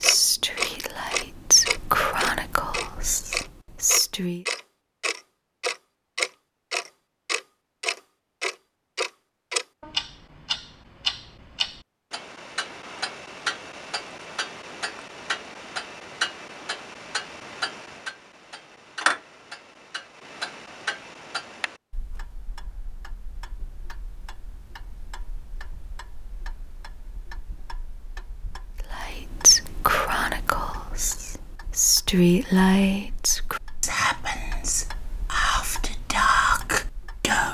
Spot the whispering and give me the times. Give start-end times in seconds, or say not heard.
0.0-4.5, 28.9-37.5.